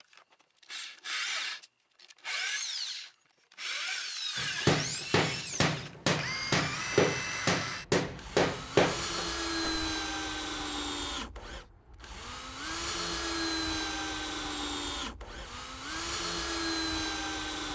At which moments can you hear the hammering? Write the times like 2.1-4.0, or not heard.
4.3-9.8.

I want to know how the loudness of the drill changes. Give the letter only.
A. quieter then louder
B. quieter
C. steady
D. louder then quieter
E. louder
C.